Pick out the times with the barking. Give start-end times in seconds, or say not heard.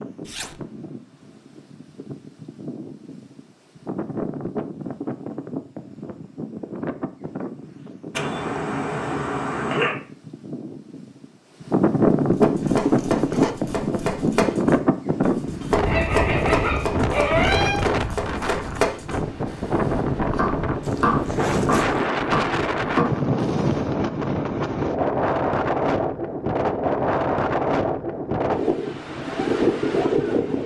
8.1-9.9, 15.8-17.8.